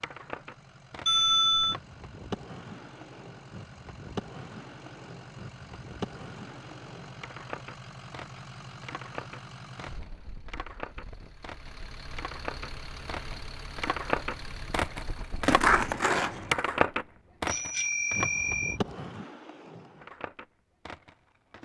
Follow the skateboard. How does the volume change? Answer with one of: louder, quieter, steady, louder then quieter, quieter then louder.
louder then quieter.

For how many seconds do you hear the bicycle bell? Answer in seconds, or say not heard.
2 s.